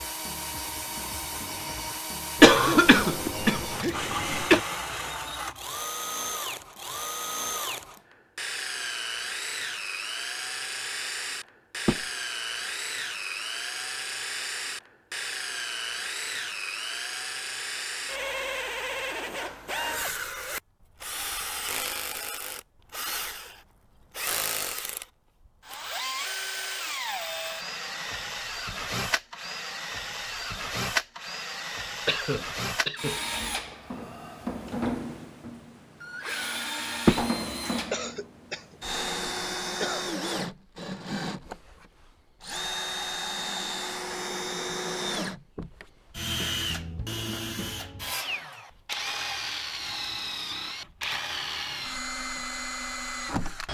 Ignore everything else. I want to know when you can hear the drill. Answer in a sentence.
You can hear the drill from 0.0 to 53.7 s.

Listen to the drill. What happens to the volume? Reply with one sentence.
The volume of the drill stays about the same.